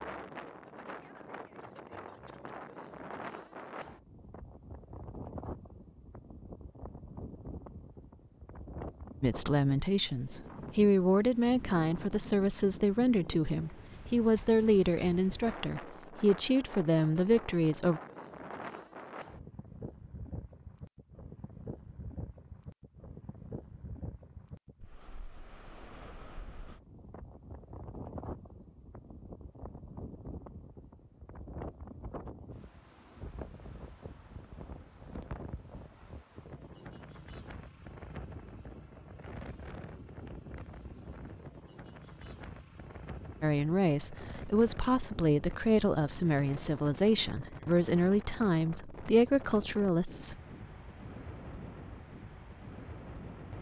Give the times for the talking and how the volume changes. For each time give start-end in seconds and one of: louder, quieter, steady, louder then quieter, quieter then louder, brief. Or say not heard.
9.2-18.0 steady
43.4-50.4 steady.